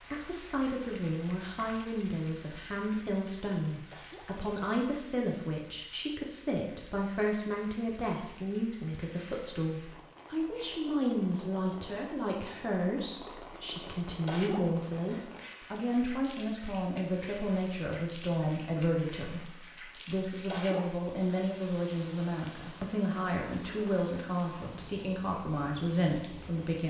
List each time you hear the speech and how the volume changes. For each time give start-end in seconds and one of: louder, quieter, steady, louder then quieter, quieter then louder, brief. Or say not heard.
0.1-26.8 steady.